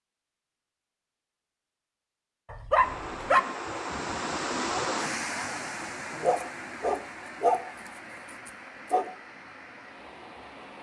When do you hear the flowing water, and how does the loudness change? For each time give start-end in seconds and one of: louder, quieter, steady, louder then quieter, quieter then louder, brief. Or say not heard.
2.8-10.7 quieter.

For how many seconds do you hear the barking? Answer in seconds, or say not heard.
3 s.